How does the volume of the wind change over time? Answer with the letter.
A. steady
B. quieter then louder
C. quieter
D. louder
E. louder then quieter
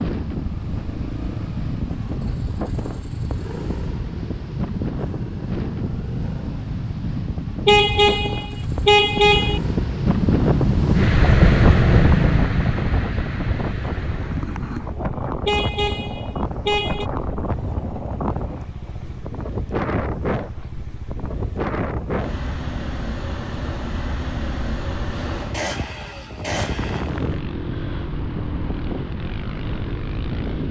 E.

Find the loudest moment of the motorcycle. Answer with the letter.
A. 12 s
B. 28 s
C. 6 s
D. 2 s
A.